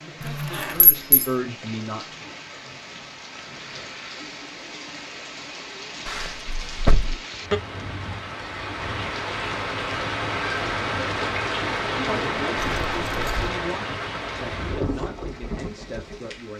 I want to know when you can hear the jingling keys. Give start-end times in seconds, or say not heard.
0.2-1.2, 6.0-7.2, 12.6-13.5.